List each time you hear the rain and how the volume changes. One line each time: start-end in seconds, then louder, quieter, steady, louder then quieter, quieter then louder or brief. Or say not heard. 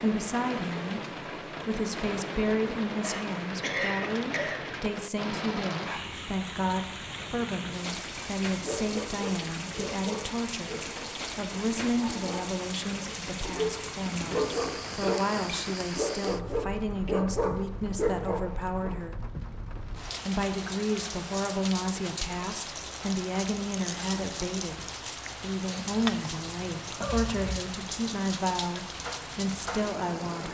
0.0-30.4 steady.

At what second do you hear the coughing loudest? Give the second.
4 s.